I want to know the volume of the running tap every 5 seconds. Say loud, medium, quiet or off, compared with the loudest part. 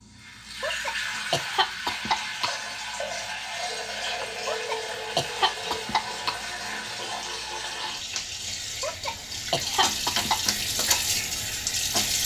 medium, medium, loud.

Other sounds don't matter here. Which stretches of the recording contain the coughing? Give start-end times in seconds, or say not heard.
0.6-2.5, 4.5-6.3, 8.8-10.4.